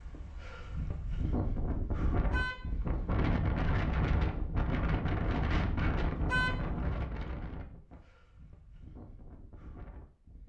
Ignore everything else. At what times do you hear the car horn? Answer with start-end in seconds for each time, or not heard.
2.1-3.1, 6.2-6.8.